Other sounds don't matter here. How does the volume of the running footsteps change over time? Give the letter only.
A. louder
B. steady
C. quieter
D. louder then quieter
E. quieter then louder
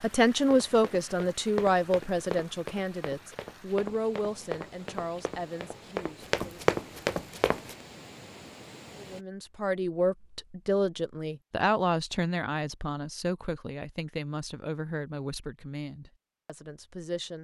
A.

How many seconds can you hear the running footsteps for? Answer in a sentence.
The running footsteps can be heard for 7 seconds in total.